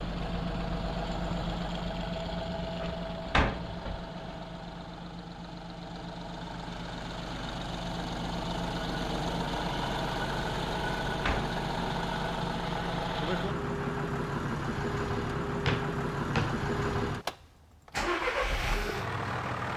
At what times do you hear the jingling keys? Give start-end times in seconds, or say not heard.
not heard.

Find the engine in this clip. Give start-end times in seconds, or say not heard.
0.0-19.7.